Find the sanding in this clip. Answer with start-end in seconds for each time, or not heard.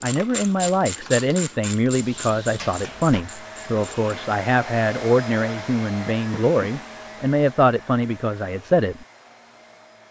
not heard.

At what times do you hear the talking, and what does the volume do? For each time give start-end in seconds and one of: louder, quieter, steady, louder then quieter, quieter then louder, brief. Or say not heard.
0.0-9.1 steady.